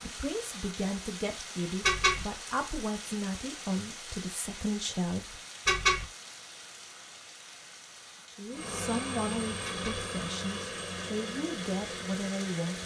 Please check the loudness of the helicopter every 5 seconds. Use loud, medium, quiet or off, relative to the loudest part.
off, loud, loud.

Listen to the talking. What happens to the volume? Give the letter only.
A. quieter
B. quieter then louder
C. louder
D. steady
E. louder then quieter
D.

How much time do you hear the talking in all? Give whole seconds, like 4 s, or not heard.
10 s.